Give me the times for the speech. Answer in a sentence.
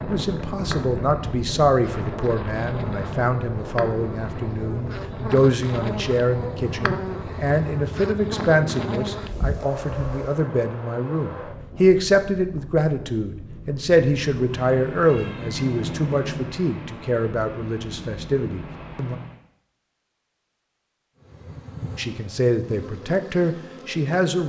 The speech can be heard from 0.0 to 19.1 s and from 21.9 to 24.4 s.